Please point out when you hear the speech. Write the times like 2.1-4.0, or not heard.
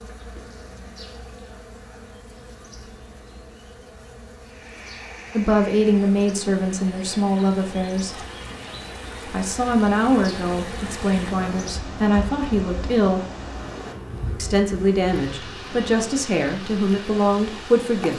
5.3-8.2, 9.2-13.2, 14.3-18.1.